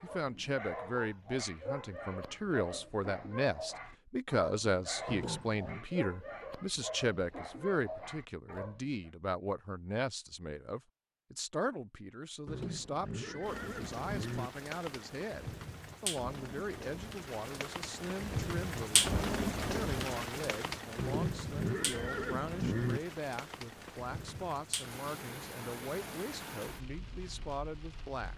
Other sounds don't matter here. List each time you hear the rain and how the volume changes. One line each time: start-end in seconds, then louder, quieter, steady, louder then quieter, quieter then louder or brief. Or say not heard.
13.4-28.3 louder then quieter.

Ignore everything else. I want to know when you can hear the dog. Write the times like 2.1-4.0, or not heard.
0.0-9.1.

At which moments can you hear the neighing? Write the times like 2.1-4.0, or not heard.
5.0-5.8, 12.4-14.5, 20.9-23.0.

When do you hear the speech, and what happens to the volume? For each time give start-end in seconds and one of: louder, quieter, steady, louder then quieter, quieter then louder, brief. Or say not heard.
0.0-28.3 quieter.